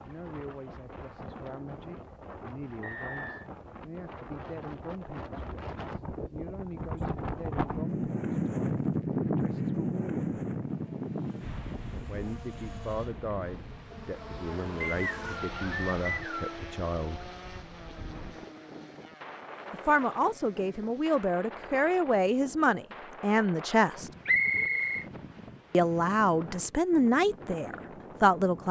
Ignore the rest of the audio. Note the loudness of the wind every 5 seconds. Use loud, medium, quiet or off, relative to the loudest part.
quiet, loud, medium, quiet, quiet, quiet.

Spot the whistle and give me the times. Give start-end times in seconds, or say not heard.
2.8-3.5, 14.8-16.6, 24.2-25.1.